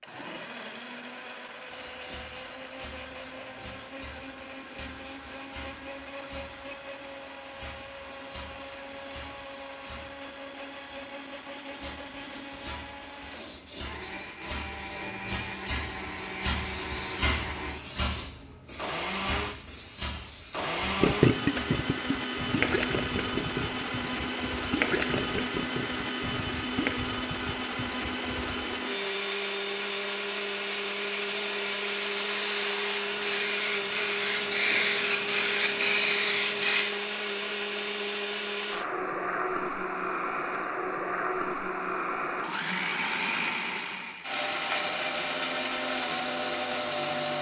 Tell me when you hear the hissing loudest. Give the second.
36 s.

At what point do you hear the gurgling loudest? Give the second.
21 s.